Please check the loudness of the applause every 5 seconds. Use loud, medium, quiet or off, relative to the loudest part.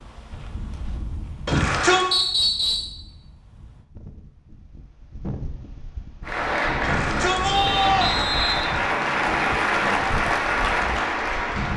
off, loud, loud.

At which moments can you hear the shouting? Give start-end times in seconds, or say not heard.
1.4-2.1, 6.8-8.2.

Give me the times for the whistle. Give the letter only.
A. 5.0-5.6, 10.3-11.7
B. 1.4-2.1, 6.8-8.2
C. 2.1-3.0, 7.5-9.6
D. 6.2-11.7
C.